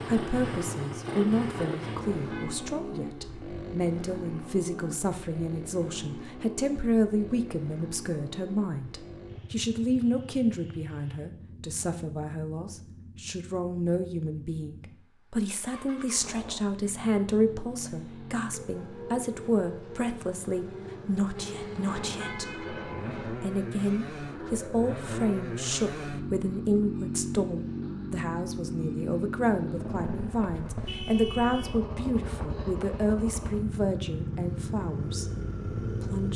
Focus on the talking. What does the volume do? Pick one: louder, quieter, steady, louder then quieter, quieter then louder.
steady.